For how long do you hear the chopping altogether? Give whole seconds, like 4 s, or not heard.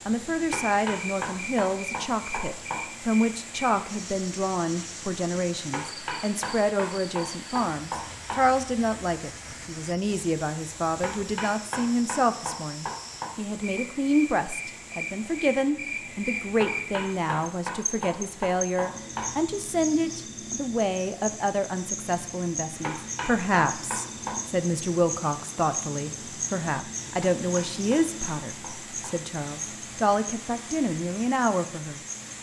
14 s.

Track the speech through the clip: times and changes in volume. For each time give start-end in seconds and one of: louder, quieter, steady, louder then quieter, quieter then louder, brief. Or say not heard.
0.1-32.3 steady.